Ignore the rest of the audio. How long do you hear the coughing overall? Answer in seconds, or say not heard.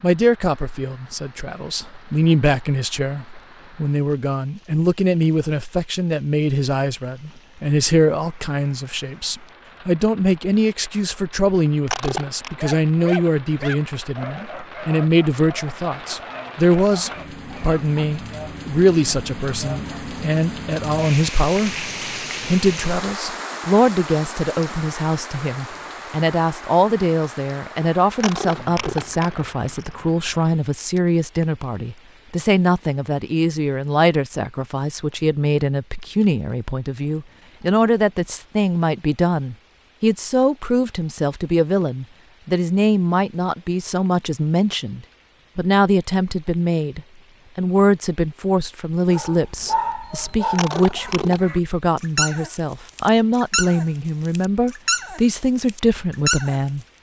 3 s.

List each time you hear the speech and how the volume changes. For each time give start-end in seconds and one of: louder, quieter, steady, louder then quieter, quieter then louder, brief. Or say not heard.
0.0-56.9 steady.